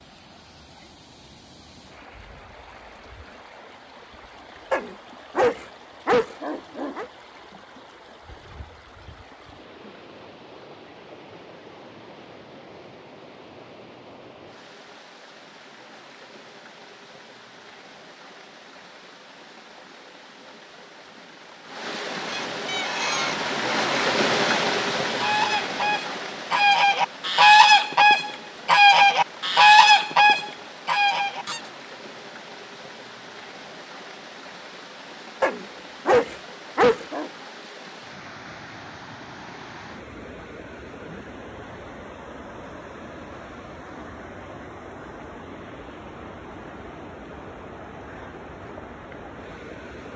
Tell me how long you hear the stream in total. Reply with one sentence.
The stream can be heard for 50 seconds in total.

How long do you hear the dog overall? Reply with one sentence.
The dog can be heard for 4 seconds in total.